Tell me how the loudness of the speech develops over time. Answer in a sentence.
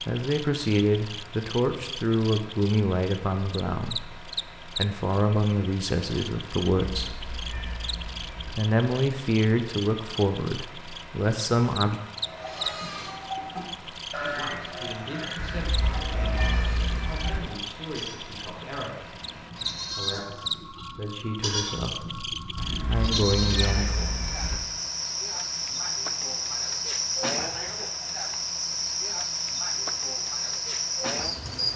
The volume of the speech goes down, then up.